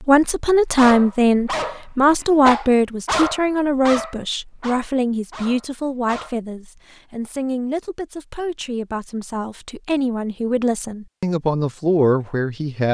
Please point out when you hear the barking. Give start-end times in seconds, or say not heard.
0.8-6.3.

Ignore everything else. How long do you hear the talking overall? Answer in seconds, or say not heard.
13 s.